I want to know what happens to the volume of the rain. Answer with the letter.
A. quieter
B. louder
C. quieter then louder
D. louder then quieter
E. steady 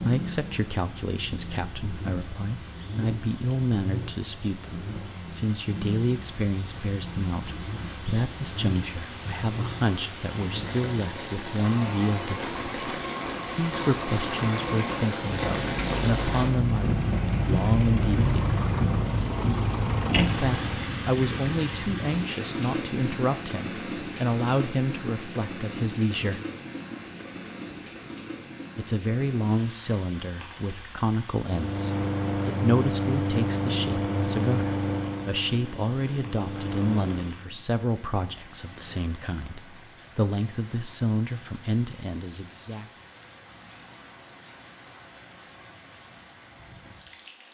D.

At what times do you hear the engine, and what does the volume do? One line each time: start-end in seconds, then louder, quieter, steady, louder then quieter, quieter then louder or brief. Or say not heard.
0.0-20.9 louder
31.4-37.4 quieter.